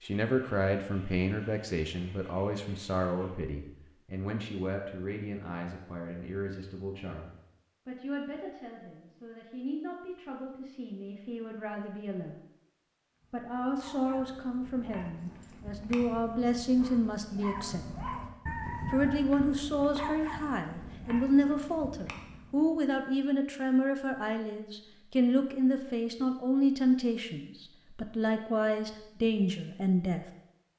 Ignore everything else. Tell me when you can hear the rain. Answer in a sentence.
The rain can't be heard in this clip.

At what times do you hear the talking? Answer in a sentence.
The talking can be heard from 0.0 to 12.4 s, from 13.3 to 17.9 s and from 18.9 to 30.2 s.